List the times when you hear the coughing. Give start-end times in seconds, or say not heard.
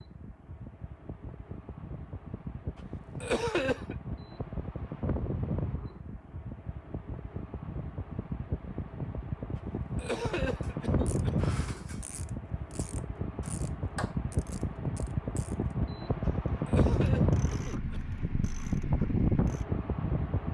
3.2-4.0, 9.9-11.3, 16.6-18.0.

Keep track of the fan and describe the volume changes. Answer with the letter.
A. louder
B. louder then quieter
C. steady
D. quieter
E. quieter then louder
A.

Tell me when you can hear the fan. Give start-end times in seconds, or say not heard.
0.0-20.4.